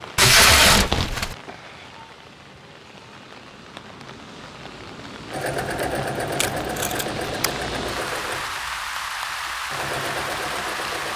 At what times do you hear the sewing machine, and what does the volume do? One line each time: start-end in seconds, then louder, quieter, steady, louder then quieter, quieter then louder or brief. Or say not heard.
5.3-11.1 quieter then louder.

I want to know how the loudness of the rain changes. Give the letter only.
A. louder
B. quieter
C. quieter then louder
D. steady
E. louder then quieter
A.